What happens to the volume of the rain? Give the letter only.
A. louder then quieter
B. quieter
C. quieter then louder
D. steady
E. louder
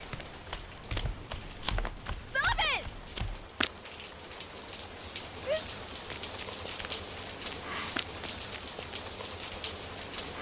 E.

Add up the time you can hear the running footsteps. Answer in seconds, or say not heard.
7 s.